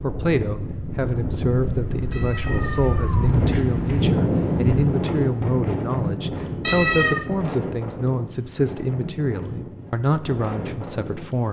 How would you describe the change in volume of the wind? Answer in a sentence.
The loudness of the wind goes up, then down.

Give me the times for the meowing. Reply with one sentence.
You can hear the meowing from 2.1 to 3.8 s and from 6.6 to 7.2 s.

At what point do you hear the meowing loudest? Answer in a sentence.
The volume of the meowing peaks at 7 seconds.